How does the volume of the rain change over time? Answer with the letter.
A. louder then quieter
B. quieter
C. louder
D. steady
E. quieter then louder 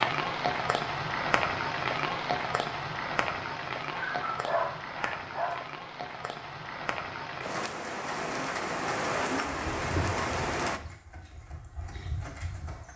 E.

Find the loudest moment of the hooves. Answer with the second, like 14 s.
10 s.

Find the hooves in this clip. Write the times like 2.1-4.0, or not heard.
9.6-12.9.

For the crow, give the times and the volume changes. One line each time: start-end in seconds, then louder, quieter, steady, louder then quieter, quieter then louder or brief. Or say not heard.
not heard.